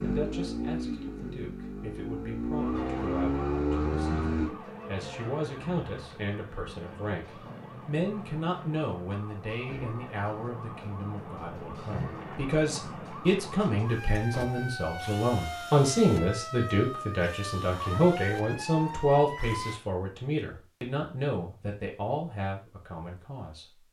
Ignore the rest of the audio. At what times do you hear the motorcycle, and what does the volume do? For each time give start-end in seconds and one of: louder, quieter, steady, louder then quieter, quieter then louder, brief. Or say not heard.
0.0-4.5 quieter then louder.